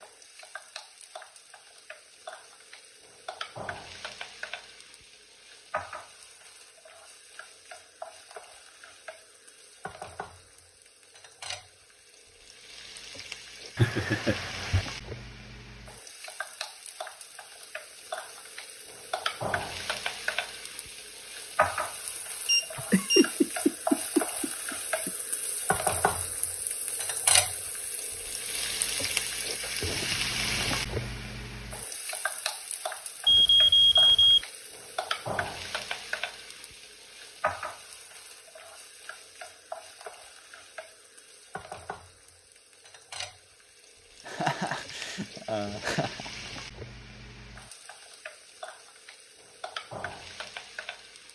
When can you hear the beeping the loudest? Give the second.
34 s.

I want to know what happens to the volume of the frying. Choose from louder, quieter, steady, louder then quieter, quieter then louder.
louder then quieter.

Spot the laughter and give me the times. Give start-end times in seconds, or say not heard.
13.8-14.8, 22.8-25.1, 44.2-46.3.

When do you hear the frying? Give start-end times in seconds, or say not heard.
0.0-51.2.